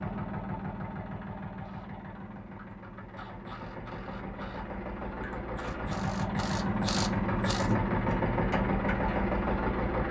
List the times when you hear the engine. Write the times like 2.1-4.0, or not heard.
0.0-10.0.